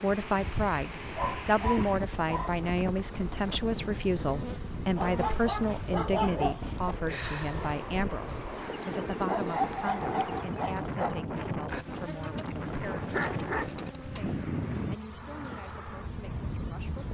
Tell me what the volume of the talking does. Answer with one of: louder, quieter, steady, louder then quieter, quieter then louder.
quieter.